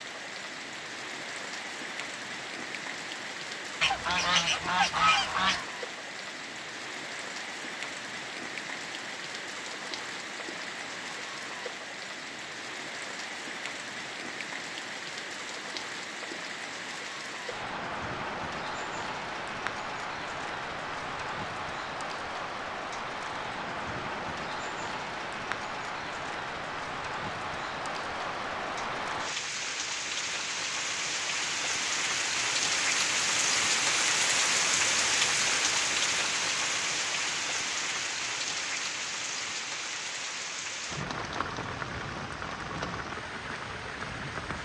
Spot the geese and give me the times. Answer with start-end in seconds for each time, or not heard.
3.8-5.7.